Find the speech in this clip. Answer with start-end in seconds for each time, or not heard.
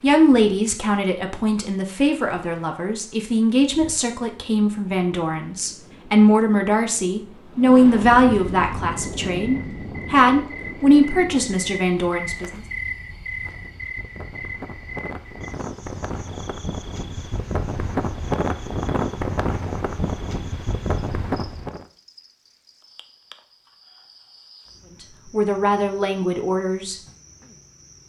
0.0-12.6, 25.0-27.0.